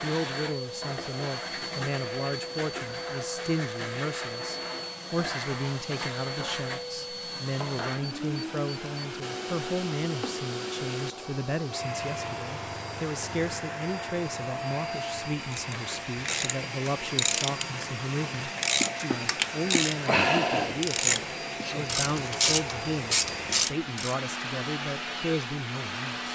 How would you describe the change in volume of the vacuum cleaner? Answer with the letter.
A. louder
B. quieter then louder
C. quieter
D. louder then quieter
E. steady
E.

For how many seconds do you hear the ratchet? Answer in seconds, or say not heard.
9 s.